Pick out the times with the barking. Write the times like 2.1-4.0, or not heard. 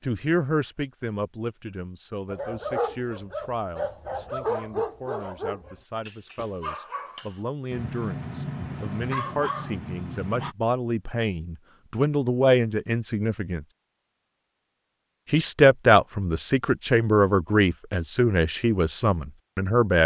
2.3-10.6.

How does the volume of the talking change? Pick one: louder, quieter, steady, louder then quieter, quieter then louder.
quieter then louder.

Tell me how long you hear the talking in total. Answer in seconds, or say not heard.
18 s.